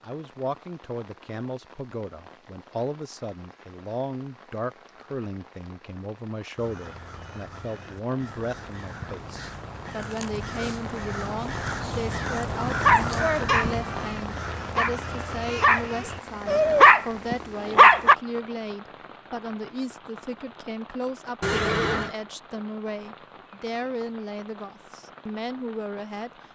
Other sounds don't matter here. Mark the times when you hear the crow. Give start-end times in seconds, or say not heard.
6.5-16.9.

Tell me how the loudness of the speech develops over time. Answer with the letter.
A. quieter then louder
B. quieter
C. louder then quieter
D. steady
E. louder
D.